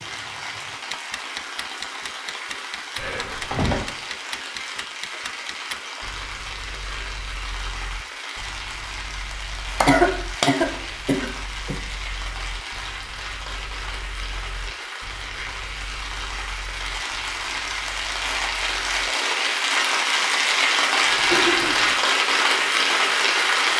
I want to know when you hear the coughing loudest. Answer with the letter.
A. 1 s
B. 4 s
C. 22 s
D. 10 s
D.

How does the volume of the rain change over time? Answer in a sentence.
The volume of the rain goes up.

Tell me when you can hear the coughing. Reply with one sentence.
You can hear the coughing from 3.0 to 3.9 s, from 9.8 to 11.8 s and from 21.1 to 21.9 s.